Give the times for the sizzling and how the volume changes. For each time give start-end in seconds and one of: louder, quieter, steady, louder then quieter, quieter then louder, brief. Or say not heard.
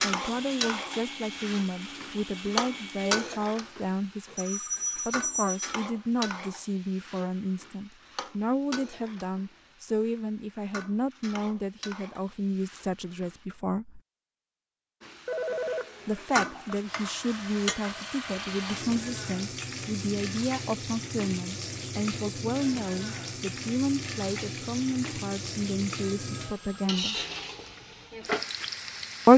0.0-13.4 quieter
15.0-29.3 steady.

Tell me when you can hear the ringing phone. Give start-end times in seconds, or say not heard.
4.3-5.8, 15.2-16.8, 26.0-26.9.